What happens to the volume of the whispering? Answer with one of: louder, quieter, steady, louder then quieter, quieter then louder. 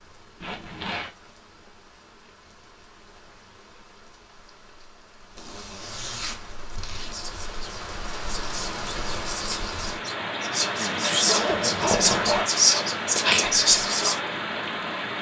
louder.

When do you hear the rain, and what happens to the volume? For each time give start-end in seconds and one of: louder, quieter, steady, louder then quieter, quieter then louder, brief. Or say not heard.
0.0-15.1 louder.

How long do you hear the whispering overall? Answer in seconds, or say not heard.
7 s.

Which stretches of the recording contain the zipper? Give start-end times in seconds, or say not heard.
0.4-1.1, 5.3-7.2, 11.2-12.5.